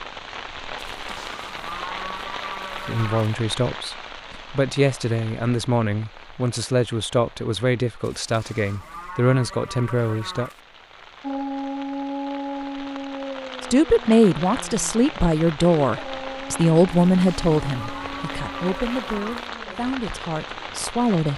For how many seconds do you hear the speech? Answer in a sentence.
You can hear the speech for 15 seconds altogether.